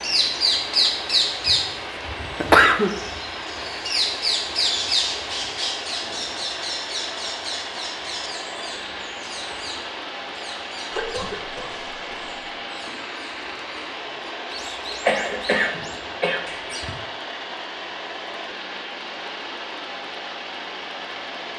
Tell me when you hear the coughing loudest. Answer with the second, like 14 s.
3 s.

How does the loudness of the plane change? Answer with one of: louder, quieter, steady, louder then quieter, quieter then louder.
steady.